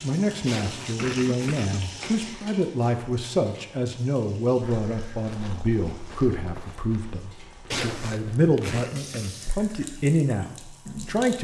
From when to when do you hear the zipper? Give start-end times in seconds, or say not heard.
0.5-1.6, 7.7-8.9.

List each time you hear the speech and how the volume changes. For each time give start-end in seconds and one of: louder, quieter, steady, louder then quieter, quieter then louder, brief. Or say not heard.
0.0-11.4 steady.